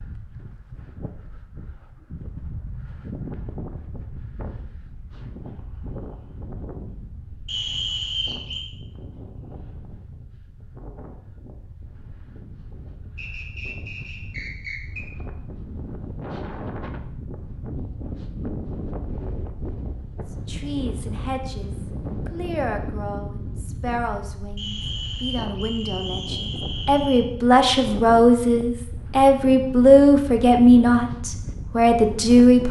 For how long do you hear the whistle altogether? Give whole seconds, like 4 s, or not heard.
6 s.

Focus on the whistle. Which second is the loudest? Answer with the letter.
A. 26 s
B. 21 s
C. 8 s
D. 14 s
C.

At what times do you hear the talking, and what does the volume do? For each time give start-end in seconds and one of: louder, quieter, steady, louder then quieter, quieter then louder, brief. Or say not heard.
20.4-32.6 louder.